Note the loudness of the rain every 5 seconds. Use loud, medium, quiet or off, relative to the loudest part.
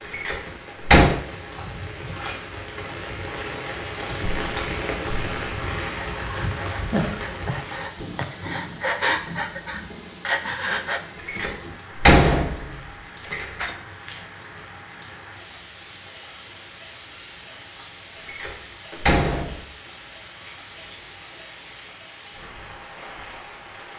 loud, loud, medium, medium, medium.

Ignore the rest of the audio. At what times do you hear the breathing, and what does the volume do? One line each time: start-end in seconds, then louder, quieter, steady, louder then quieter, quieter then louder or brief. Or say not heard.
4.2-11.0 louder.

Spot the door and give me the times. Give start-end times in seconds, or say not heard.
0.1-1.2, 11.2-13.8, 18.2-19.6.